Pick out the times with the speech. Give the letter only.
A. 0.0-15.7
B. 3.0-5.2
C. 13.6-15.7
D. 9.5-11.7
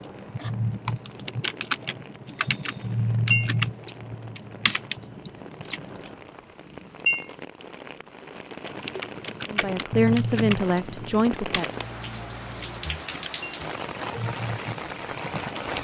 D.